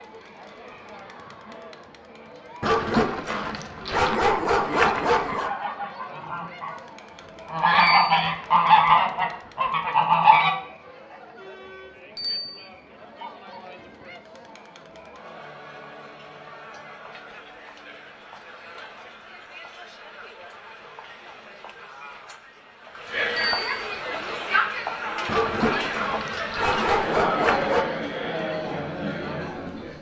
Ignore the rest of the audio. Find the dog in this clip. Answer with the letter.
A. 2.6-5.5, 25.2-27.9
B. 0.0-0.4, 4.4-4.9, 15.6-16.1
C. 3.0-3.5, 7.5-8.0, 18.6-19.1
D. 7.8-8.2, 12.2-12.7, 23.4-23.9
A.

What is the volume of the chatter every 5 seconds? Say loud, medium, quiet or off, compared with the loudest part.
quiet, quiet, quiet, quiet, loud, loud.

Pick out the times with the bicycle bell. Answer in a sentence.
The bicycle bell can be heard from 7.8 to 8.2 s, from 12.2 to 12.7 s and from 23.4 to 23.9 s.